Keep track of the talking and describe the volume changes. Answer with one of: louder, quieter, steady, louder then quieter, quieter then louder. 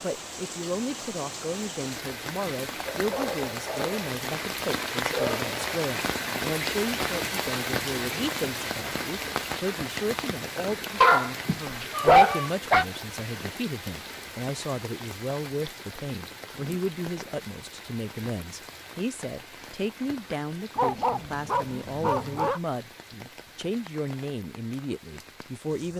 steady.